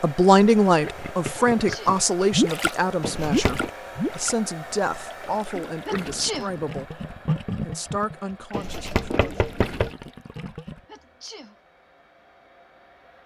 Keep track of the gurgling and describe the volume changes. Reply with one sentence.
The loudness of the gurgling goes down.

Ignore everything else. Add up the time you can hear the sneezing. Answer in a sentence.
You can hear the sneezing for 2 seconds altogether.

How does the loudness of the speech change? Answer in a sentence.
The volume of the speech goes down.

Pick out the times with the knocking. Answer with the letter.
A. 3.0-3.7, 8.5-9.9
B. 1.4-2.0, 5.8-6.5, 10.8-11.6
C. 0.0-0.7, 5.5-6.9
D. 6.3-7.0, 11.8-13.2
A.